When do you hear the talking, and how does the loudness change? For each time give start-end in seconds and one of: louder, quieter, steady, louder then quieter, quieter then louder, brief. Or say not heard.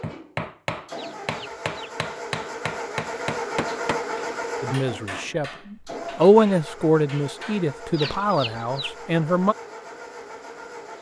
4.6-9.6 louder then quieter.